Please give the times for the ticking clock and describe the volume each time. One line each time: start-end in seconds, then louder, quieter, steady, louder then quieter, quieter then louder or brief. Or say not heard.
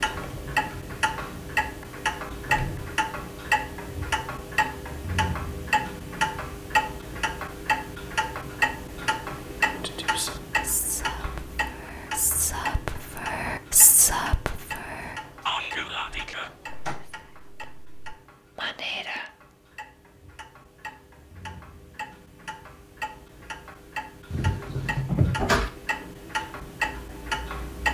0.0-27.9 quieter then louder.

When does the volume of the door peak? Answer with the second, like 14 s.
25 s.